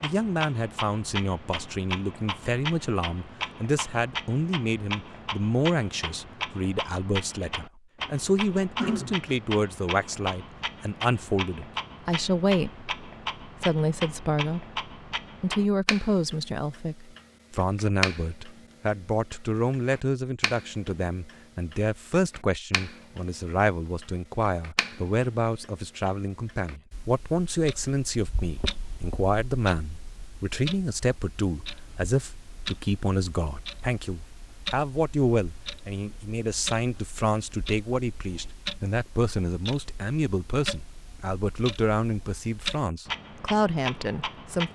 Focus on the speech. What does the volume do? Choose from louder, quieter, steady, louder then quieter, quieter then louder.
steady.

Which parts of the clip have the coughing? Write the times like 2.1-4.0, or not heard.
8.8-9.3.